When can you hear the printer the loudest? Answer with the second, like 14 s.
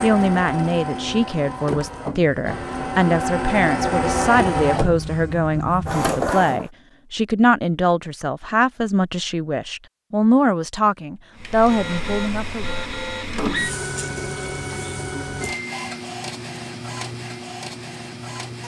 4 s.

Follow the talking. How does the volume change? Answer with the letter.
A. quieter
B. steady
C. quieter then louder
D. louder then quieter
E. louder
B.